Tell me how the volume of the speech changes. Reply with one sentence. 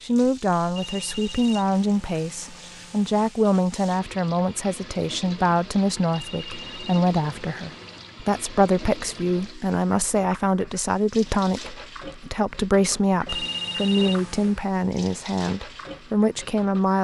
The volume of the speech stays about the same.